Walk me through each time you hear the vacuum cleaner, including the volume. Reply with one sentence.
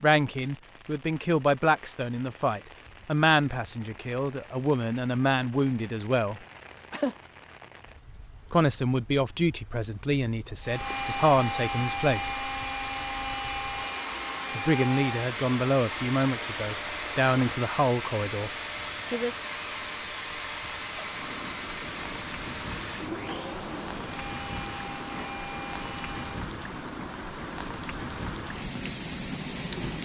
The vacuum cleaner can be heard from 10.6 to 26.5 s, getting quieter.